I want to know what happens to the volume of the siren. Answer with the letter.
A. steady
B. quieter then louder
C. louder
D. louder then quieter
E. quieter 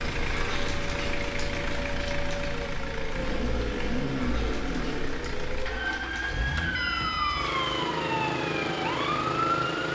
C.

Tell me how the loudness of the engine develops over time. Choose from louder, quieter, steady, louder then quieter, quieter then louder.
steady.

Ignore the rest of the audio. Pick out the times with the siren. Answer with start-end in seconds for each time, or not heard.
0.0-9.9.